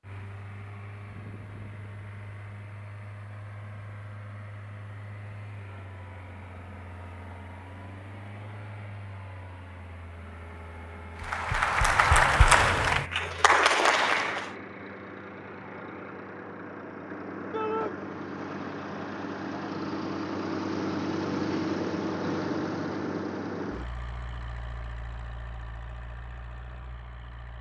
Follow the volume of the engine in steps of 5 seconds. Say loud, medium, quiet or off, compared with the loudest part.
quiet, quiet, quiet, medium, loud, quiet.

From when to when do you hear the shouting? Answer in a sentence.
You can hear the shouting from 17.5 to 17.9 s.